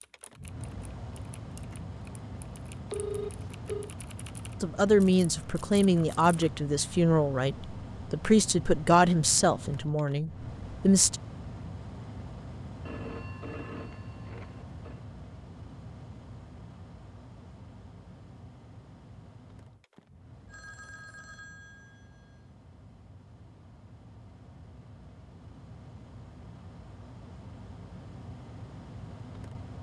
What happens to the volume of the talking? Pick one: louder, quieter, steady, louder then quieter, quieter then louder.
quieter.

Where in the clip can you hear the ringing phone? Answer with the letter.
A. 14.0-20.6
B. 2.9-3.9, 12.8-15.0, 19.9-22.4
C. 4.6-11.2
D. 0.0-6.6
B.